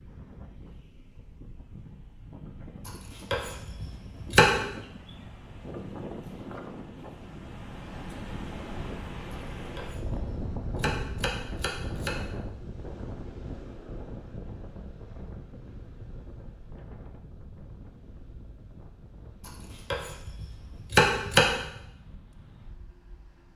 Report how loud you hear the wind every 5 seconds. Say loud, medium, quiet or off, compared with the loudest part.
medium, loud, loud, medium, quiet.